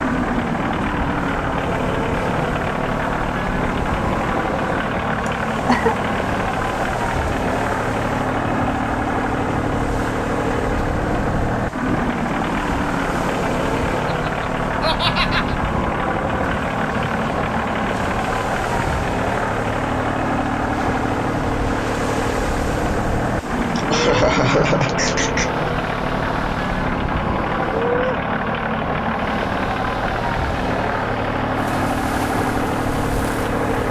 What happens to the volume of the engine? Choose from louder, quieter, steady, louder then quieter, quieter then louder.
steady.